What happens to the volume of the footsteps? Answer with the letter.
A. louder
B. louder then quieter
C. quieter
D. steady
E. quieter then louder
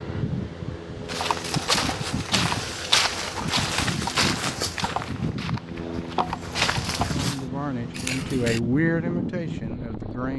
E.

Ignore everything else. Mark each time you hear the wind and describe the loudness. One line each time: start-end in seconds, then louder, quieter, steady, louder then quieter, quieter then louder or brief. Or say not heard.
0.0-10.3 steady.